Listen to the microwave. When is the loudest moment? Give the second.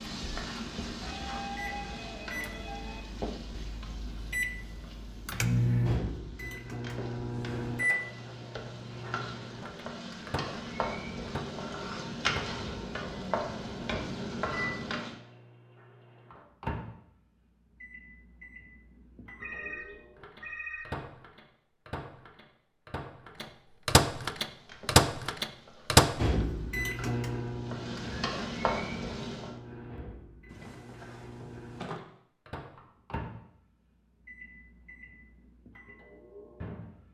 25 s.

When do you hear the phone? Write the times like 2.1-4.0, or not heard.
1.0-3.0, 19.4-21.1, 30.5-32.0.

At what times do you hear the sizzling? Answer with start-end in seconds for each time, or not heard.
0.0-15.2, 24.4-29.6.